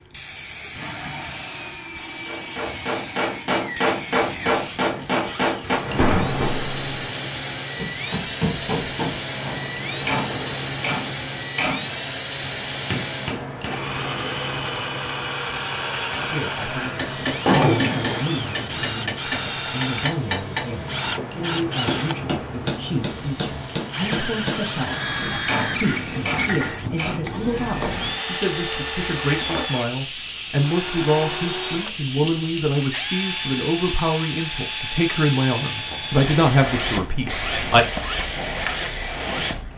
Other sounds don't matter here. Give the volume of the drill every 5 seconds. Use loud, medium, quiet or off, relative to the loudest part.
medium, loud, loud, loud, loud, loud, loud, loud.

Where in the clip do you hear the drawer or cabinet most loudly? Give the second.
18 s.